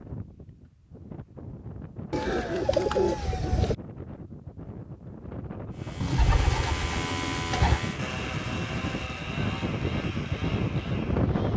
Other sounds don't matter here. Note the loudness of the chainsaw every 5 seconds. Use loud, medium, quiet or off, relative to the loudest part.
off, loud, medium.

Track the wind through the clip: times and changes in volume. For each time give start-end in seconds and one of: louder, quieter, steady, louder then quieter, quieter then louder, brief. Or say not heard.
0.0-11.5 louder.